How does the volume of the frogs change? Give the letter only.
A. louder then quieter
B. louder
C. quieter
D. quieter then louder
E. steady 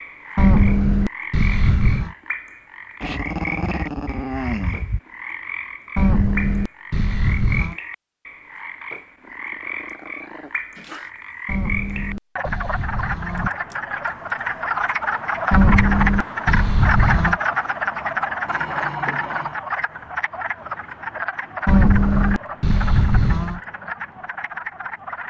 A.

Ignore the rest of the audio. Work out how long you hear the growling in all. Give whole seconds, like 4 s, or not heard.
5 s.